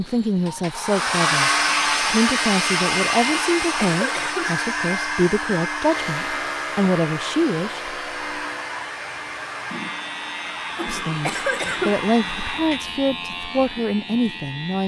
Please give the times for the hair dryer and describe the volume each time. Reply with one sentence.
You can hear the hair dryer from 0.0 to 12.9 s, getting quieter.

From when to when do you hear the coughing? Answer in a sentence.
You can hear the coughing from 3.3 to 4.5 s and from 10.8 to 11.9 s.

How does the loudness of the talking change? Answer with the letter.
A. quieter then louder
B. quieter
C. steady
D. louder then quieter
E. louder
C.